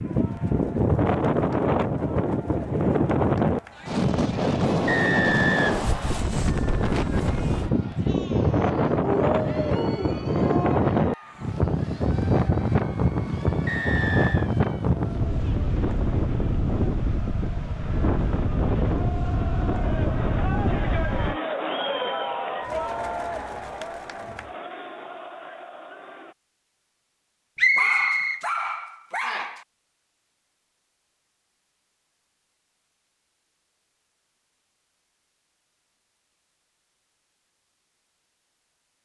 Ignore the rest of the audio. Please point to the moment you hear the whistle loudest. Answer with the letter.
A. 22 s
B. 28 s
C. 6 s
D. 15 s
B.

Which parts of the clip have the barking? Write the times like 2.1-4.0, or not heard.
9.0-10.8, 27.8-29.6.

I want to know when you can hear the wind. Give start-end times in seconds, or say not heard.
0.0-21.4.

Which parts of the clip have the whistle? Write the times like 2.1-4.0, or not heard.
4.8-6.3, 13.7-14.5, 27.6-28.4.